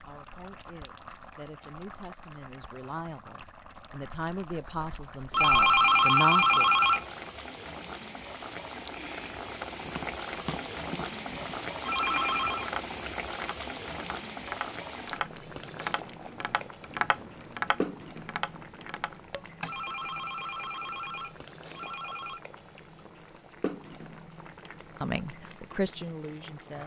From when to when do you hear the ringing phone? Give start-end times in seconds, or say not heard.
5.3-7.0, 11.8-12.7, 19.6-22.4.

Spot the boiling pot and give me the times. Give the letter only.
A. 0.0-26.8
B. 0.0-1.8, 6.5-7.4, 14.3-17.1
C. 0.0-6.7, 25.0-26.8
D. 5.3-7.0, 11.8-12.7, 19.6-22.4
A.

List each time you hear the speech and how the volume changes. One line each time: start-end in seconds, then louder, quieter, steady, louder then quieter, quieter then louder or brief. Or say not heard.
0.0-6.7 louder
25.0-26.8 brief.